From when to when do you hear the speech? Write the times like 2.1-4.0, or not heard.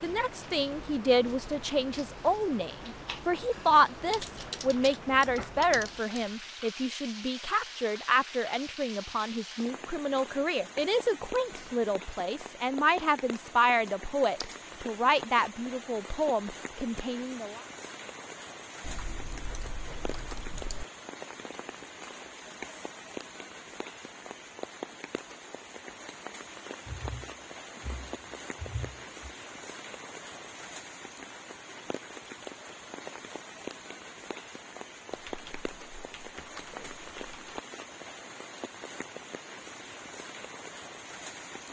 0.0-17.6.